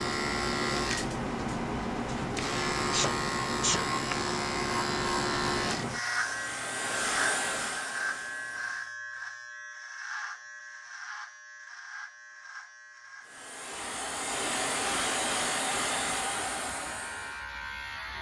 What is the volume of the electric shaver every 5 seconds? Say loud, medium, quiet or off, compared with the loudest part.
loud, loud, quiet, medium.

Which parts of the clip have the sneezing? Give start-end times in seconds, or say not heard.
2.9-3.9.